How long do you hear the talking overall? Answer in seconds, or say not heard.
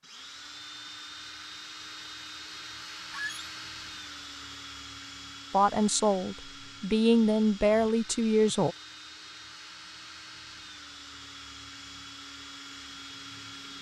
3 s.